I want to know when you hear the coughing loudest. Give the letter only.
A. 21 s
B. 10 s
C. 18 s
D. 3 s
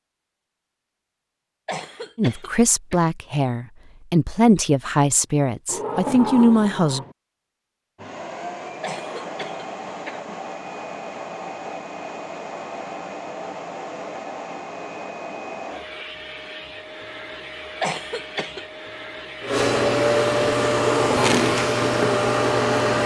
C.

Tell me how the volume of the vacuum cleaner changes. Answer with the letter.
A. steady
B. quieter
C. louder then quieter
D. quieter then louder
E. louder
E.